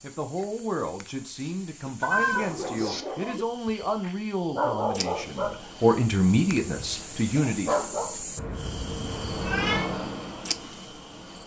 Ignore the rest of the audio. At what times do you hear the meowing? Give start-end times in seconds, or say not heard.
2.0-3.0, 8.3-9.9.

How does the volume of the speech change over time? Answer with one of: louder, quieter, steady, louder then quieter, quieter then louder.
louder.